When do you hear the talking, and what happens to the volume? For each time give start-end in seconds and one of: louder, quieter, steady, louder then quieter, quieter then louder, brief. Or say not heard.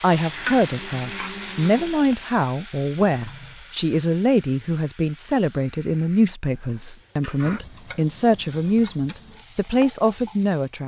0.0-10.8 steady.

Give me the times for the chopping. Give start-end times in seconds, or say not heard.
not heard.